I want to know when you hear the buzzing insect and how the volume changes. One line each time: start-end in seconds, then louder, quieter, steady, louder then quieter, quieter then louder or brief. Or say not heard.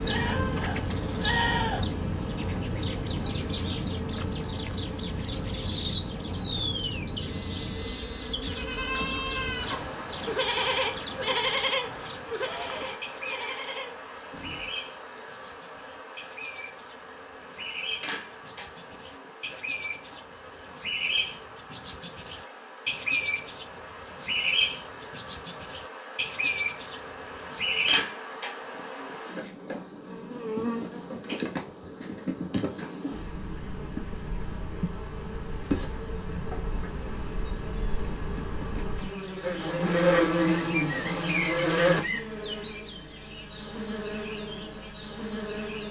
0.0-45.8 quieter then louder.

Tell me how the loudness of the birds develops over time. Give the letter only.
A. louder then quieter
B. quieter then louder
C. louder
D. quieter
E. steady
B.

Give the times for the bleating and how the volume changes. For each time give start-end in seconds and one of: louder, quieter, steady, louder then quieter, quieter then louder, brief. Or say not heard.
0.0-1.9 brief
8.4-14.7 quieter.